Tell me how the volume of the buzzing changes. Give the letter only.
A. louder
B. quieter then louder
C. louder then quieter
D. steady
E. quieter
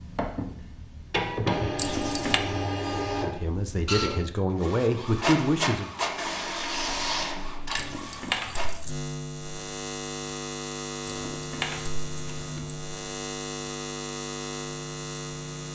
A.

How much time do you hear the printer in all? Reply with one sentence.
You can hear the printer for 9 seconds altogether.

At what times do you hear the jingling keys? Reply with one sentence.
You can hear the jingling keys from 1.8 to 2.4 s, from 7.8 to 8.9 s and from 11.1 to 12.8 s.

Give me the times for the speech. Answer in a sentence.
The speech can be heard from 3.2 to 5.9 s.